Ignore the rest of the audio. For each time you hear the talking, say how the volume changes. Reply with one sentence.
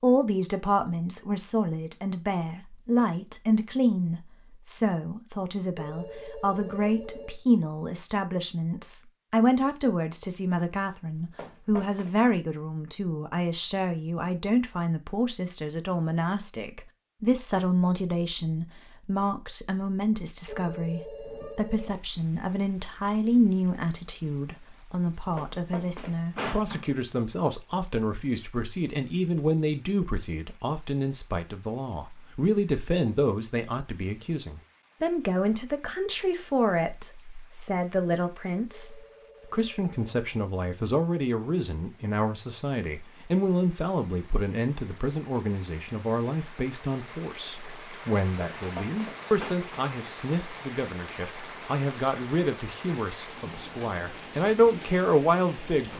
You can hear the talking from 0.0 to 55.9 s, at a steady volume.